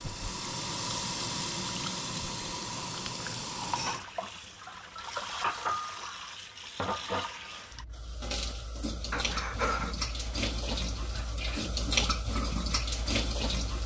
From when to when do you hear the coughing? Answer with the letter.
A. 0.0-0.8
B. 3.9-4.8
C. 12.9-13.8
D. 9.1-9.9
D.